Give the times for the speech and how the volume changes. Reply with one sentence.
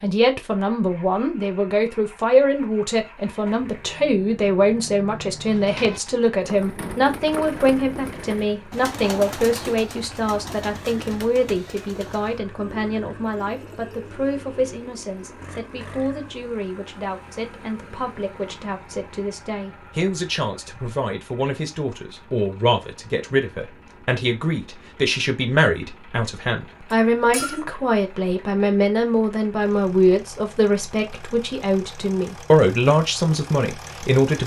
The speech can be heard from 0.0 to 34.4 s, getting quieter then louder.